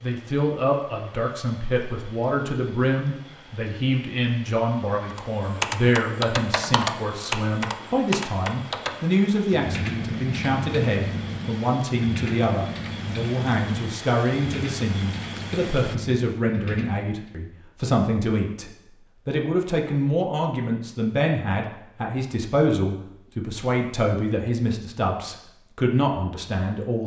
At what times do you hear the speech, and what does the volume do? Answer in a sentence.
The speech can be heard from 0.0 to 27.0 s, at a steady volume.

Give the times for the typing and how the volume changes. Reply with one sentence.
The typing can be heard from 5.2 to 17.4 s, getting quieter.